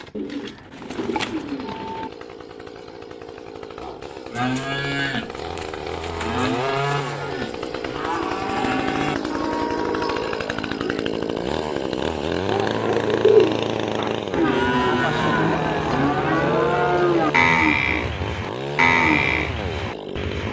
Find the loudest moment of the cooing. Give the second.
13 s.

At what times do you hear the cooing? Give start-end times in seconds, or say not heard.
0.1-2.1, 12.4-14.2.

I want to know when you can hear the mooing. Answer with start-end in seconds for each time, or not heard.
4.3-11.0, 14.3-20.4.